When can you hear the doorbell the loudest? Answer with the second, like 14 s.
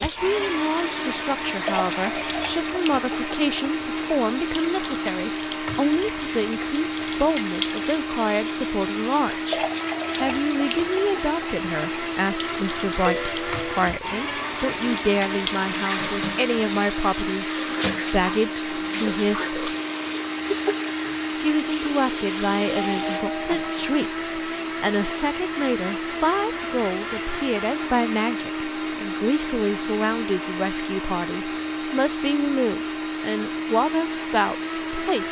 13 s.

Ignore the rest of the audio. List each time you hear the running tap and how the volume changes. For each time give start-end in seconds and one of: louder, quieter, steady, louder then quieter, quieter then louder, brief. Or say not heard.
0.0-23.2 steady.